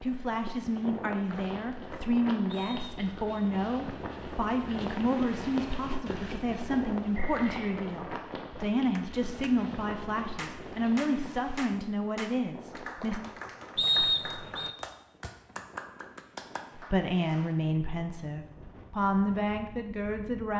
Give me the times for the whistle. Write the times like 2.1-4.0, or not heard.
2.5-3.5, 7.1-7.8, 13.8-14.8.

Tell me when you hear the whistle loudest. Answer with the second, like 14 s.
14 s.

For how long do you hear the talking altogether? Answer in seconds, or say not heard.
17 s.